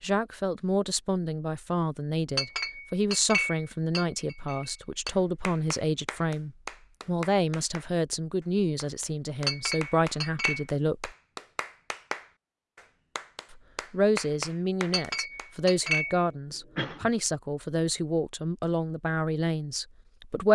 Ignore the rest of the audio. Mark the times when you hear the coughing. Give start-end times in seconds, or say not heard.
15.8-17.1.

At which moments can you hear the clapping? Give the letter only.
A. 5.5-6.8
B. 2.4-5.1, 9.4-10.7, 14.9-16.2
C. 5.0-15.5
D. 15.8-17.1
C.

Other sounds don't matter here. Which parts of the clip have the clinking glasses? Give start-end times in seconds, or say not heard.
2.4-5.1, 9.4-10.7, 14.9-16.2.